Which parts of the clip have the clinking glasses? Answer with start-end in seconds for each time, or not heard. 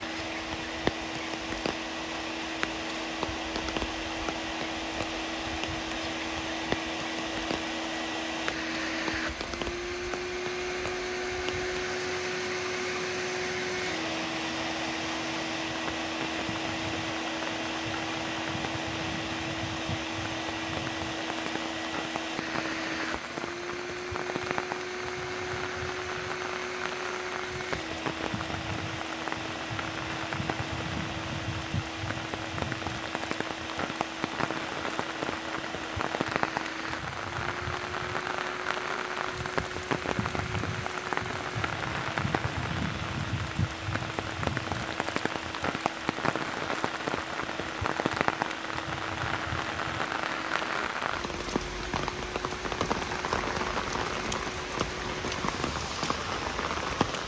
not heard.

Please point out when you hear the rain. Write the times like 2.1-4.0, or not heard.
0.0-57.2.